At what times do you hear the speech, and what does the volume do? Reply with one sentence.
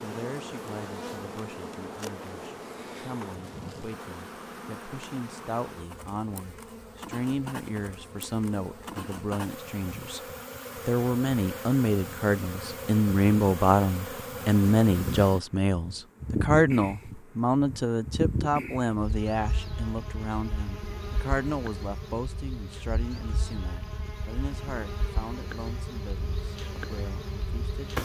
You can hear the speech from 0.0 to 10.2 s, getting louder; and from 10.8 to 28.0 s, getting quieter.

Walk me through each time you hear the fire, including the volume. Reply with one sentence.
You can't hear the fire here.